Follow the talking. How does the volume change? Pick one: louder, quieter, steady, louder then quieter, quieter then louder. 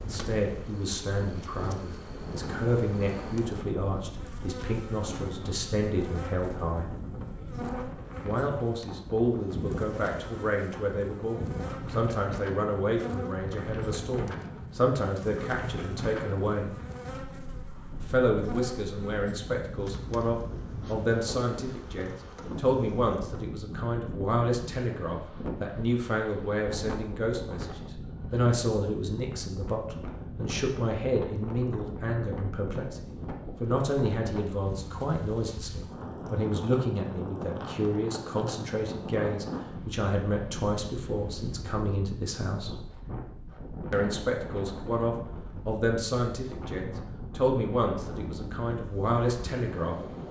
steady.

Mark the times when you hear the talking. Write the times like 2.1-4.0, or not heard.
0.0-7.0, 8.2-16.8, 18.0-33.0, 33.6-42.8, 43.9-50.0.